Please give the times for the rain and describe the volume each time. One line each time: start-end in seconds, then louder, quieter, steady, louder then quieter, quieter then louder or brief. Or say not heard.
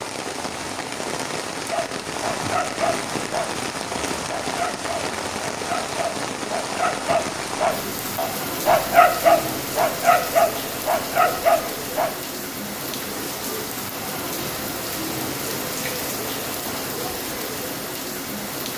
0.0-18.7 steady.